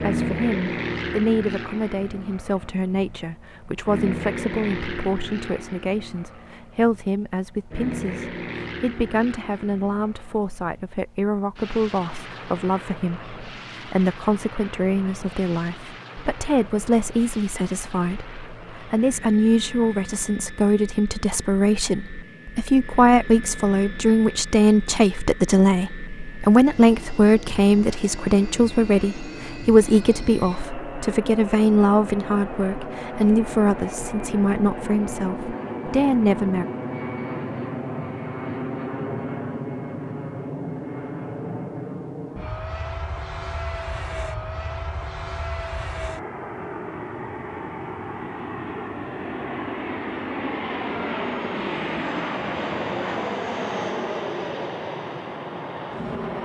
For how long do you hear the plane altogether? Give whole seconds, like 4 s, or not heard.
56 s.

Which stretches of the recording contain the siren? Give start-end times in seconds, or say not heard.
not heard.